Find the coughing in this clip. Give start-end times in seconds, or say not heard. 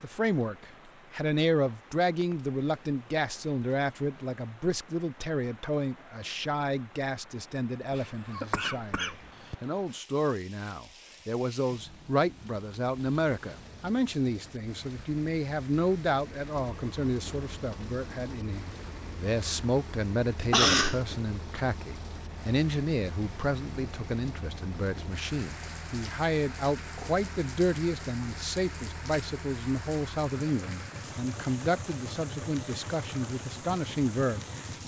7.9-9.6, 20.5-21.0.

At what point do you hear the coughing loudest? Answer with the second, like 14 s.
21 s.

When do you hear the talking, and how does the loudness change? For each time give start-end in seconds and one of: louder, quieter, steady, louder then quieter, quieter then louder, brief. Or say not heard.
0.0-34.5 steady.